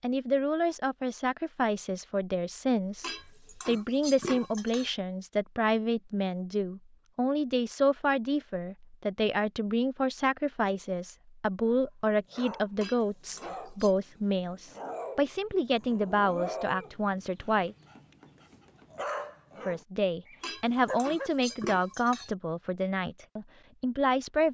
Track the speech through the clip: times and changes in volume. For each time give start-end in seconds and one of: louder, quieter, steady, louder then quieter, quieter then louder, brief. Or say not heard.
0.0-17.8 steady
19.6-24.4 quieter.